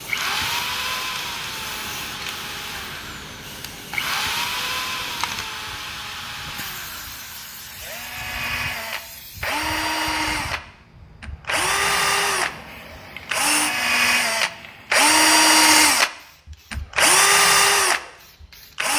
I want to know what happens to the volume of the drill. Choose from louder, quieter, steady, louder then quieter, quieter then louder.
louder.